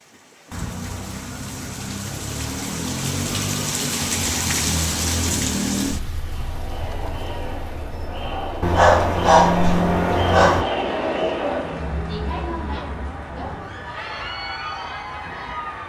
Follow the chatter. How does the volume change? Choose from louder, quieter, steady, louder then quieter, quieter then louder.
louder then quieter.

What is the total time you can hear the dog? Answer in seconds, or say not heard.
2 s.